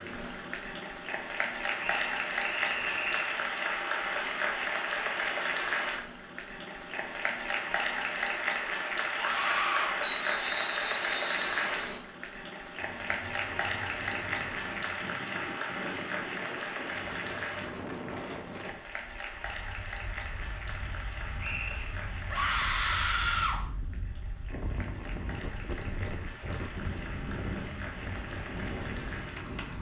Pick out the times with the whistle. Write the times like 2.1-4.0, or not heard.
1.8-3.4, 10.0-12.0, 21.4-21.9.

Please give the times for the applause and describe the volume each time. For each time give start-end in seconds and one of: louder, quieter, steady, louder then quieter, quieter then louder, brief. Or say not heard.
0.0-29.7 quieter.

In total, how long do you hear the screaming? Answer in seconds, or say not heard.
2 s.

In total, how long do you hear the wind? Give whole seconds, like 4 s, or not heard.
17 s.